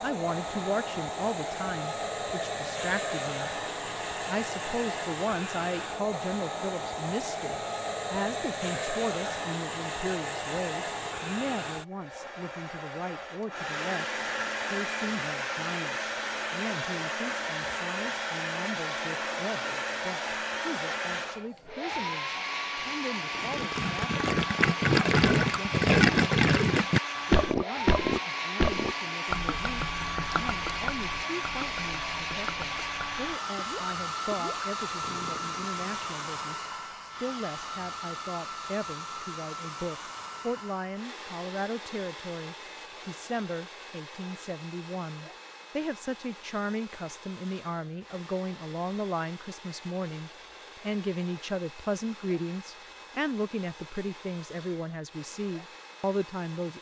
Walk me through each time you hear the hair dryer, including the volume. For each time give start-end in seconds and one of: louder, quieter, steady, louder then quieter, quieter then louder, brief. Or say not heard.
0.0-56.7 quieter.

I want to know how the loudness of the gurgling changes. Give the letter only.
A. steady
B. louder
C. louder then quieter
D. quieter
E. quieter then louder
D.